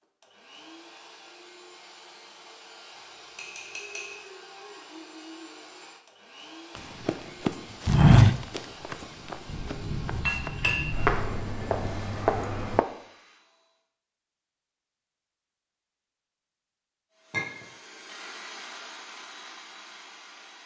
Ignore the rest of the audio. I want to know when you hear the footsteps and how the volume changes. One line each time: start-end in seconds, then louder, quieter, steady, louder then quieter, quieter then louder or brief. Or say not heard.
6.8-12.8 quieter then louder.